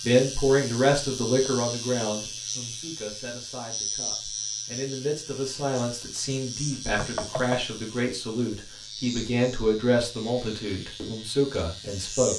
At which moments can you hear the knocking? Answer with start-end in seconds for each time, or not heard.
7.0-7.7.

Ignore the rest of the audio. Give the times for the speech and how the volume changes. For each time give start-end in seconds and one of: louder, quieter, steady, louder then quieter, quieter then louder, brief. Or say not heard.
0.0-12.3 quieter then louder.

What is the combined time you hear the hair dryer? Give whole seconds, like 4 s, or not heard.
not heard.